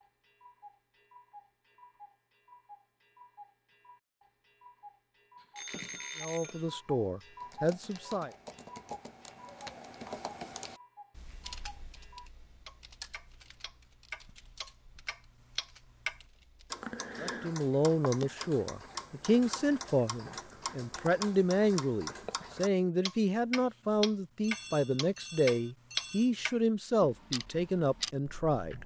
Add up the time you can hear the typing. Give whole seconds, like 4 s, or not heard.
9 s.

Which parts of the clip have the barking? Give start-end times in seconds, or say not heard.
not heard.